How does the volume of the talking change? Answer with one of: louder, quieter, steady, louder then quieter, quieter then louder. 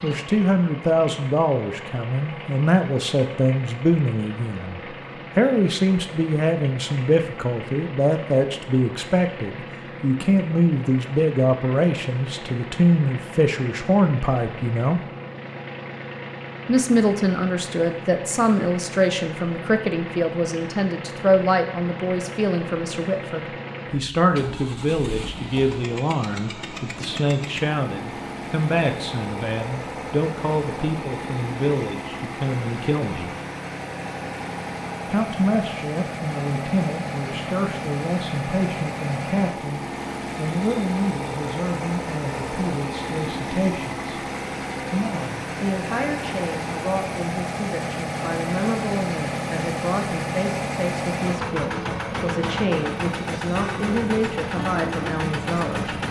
quieter.